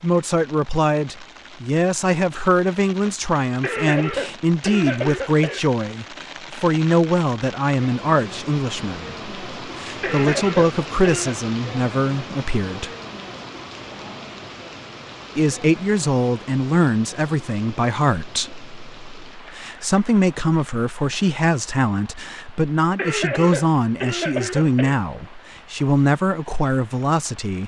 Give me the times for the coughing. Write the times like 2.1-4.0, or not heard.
3.6-5.6, 10.0-11.3, 22.9-24.9.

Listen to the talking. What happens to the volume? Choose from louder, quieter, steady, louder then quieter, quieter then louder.
steady.